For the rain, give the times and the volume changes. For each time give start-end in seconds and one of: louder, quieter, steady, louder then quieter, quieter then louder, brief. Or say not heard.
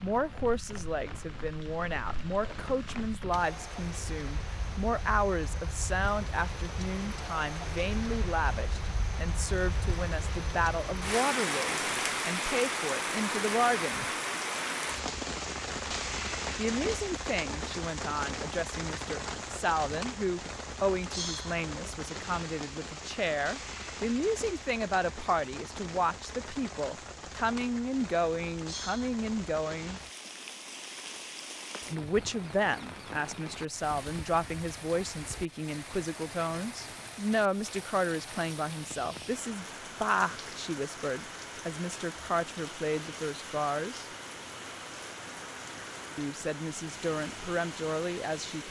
0.0-48.6 louder then quieter.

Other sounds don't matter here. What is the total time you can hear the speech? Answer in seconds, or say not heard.
42 s.